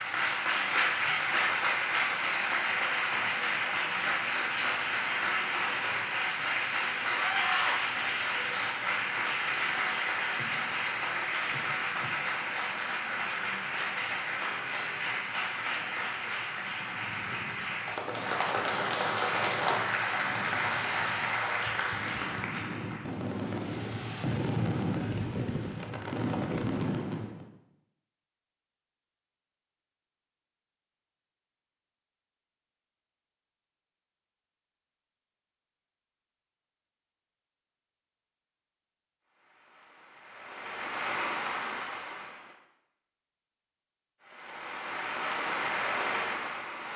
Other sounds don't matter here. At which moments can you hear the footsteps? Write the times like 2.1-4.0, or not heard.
not heard.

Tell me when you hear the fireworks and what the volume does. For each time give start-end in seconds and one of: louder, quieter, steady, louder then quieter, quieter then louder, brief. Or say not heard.
16.6-27.5 louder.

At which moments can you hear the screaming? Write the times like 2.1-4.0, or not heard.
7.0-7.8.